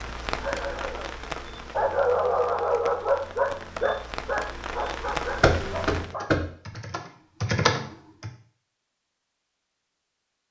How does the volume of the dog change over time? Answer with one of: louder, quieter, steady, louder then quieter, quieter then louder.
louder then quieter.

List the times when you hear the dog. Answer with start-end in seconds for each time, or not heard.
0.3-6.3.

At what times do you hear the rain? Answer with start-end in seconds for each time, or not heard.
0.0-6.2.